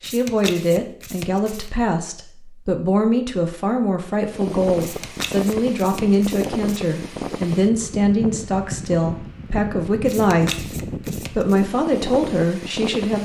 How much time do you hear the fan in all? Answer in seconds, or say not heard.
9 s.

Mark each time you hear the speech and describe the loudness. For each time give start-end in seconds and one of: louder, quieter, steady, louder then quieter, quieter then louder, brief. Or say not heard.
0.0-13.2 steady.